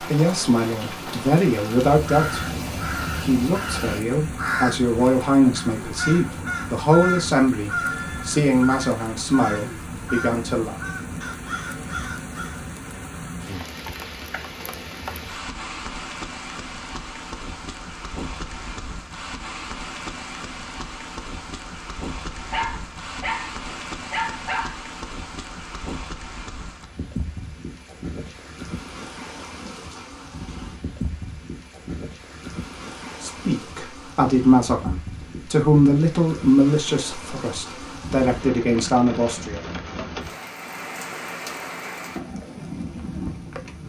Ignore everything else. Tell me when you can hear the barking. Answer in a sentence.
You can hear the barking from 22.5 to 24.8 s.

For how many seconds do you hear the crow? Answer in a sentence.
You can hear the crow for 11 seconds altogether.